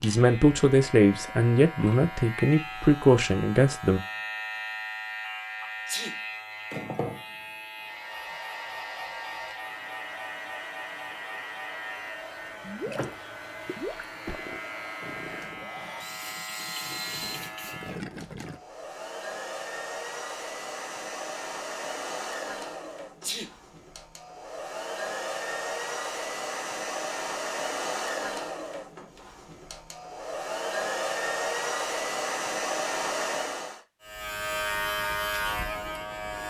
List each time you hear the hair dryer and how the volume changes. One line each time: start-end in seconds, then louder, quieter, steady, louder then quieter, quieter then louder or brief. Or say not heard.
7.8-33.8 louder.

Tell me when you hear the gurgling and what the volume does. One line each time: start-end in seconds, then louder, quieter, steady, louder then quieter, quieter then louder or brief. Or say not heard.
12.6-18.6 quieter then louder.